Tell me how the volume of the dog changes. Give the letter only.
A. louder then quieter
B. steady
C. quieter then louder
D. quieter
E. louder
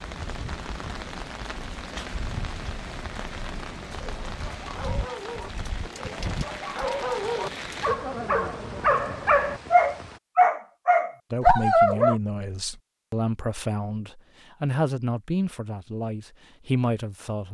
E.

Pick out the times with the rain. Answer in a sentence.
You can hear the rain from 0.0 to 10.2 s.